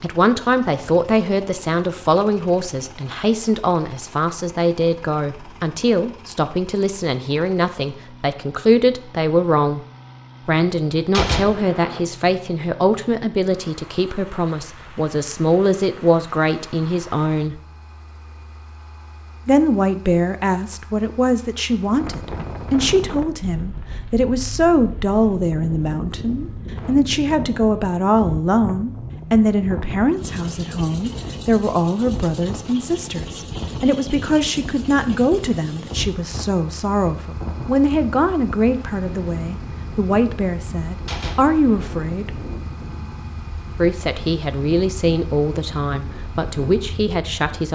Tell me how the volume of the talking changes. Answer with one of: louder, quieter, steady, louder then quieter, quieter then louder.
steady.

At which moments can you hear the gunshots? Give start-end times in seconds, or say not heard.
11.1-12.0, 41.0-42.0.